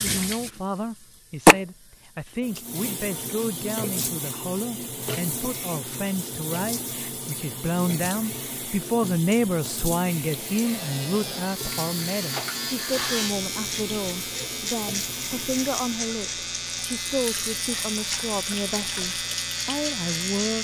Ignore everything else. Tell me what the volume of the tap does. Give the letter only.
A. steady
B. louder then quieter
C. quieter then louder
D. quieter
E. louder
D.